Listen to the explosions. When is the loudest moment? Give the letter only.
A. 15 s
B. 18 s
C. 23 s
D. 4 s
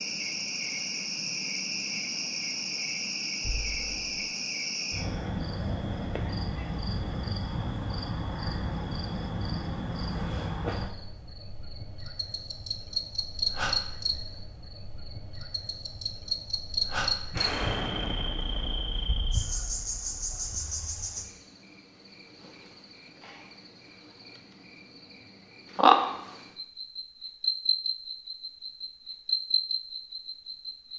B.